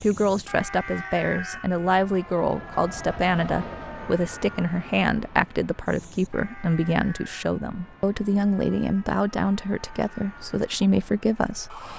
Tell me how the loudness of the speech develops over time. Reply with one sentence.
The loudness of the speech stays about the same.